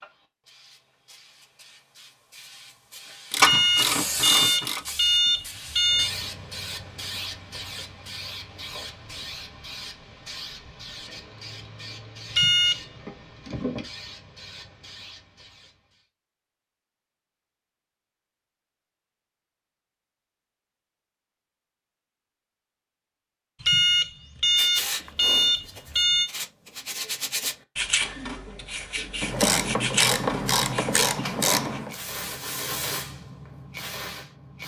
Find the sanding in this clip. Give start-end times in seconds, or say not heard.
24.6-33.0.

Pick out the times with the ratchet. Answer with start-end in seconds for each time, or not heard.
3.3-4.8, 29.2-31.9.